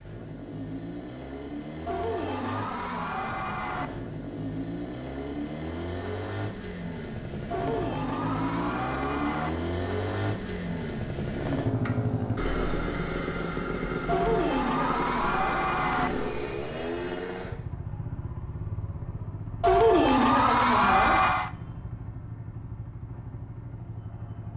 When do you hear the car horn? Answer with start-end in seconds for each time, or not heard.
not heard.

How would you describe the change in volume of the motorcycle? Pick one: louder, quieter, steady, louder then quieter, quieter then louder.
louder then quieter.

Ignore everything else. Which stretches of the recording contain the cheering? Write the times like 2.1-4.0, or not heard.
1.9-3.9, 7.5-9.5, 14.1-16.1, 19.6-21.5.